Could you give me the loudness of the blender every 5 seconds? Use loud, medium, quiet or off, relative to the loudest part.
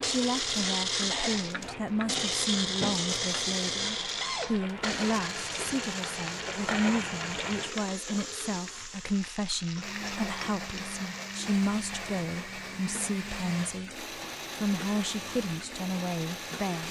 loud, medium, medium, medium.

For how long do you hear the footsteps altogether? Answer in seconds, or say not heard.
not heard.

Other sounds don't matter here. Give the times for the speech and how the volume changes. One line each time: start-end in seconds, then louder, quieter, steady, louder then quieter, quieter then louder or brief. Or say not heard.
0.0-16.8 steady.